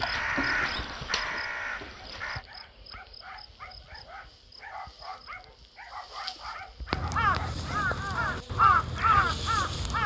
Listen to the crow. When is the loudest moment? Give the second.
9 s.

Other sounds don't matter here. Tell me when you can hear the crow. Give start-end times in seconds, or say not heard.
0.0-2.5, 6.9-10.0.